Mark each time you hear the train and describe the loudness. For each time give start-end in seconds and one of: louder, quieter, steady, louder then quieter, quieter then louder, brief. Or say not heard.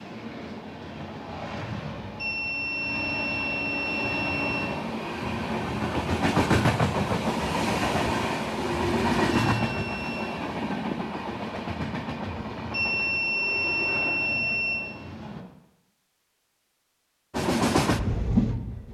0.0-15.4 louder then quieter
17.3-18.8 brief.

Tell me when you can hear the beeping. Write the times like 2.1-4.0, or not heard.
2.1-4.7, 9.3-10.3, 12.7-14.8.